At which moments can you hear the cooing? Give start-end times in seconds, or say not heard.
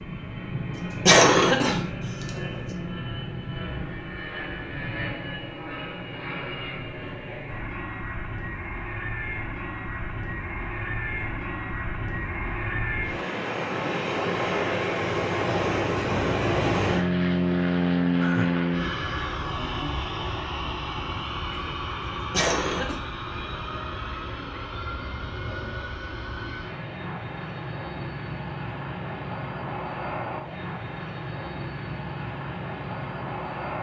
not heard.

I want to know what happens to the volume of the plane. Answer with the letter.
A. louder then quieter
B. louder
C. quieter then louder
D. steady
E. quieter
A.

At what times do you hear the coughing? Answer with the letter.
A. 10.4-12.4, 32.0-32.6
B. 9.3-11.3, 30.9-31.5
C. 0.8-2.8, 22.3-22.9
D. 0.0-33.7
C.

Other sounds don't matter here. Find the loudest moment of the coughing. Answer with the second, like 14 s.
1 s.